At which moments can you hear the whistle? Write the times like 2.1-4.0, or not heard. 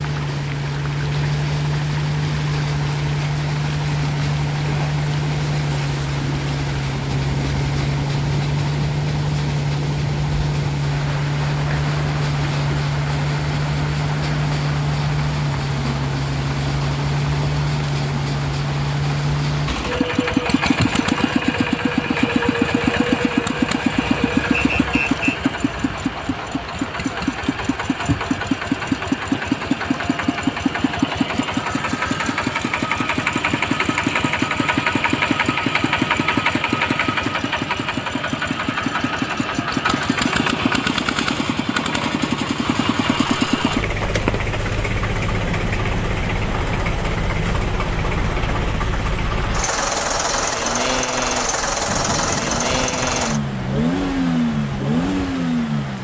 24.5-25.4.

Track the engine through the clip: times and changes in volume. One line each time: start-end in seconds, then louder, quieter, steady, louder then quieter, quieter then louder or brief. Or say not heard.
0.0-55.9 steady.